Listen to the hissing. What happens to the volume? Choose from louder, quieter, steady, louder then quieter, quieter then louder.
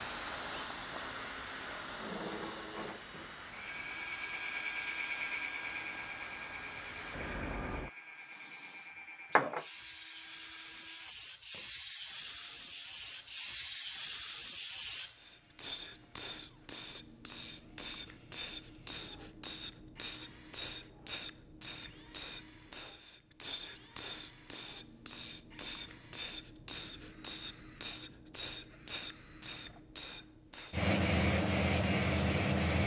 louder.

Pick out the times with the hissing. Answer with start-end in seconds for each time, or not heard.
0.0-32.8.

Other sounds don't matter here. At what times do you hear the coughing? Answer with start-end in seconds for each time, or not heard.
not heard.